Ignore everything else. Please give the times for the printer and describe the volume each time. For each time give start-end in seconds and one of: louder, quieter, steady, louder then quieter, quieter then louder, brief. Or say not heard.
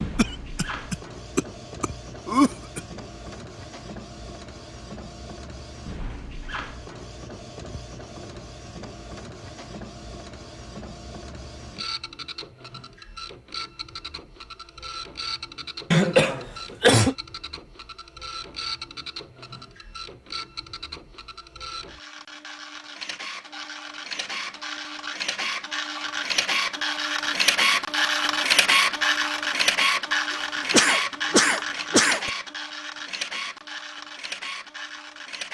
0.0-35.4 louder.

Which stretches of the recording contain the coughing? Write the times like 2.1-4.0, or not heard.
0.1-2.8, 15.9-17.1, 30.7-32.3.